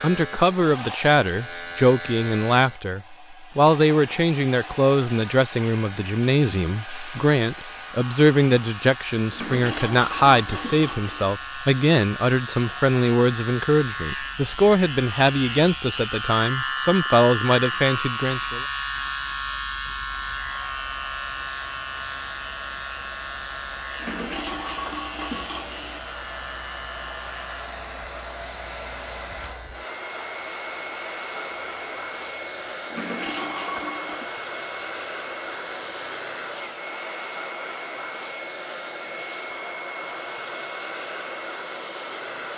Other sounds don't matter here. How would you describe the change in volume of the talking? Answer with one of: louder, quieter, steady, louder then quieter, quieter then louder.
steady.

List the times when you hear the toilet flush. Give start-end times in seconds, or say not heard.
9.3-11.3, 23.9-26.0, 32.9-34.3.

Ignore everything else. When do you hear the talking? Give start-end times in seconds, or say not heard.
0.0-18.6.